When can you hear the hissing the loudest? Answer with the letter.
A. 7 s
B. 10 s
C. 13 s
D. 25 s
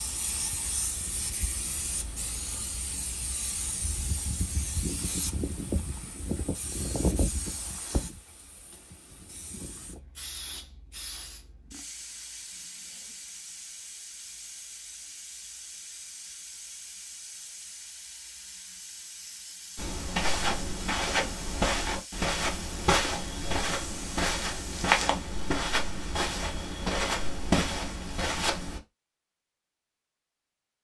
A.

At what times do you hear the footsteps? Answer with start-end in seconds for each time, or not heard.
19.8-28.8.